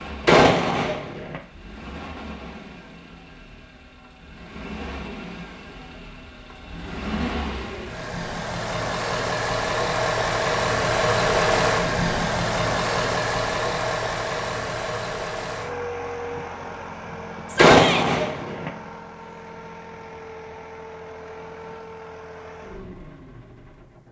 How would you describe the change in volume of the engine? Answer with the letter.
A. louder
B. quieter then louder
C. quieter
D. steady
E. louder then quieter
E.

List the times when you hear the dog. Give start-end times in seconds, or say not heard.
not heard.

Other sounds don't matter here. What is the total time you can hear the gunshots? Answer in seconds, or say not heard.
2 s.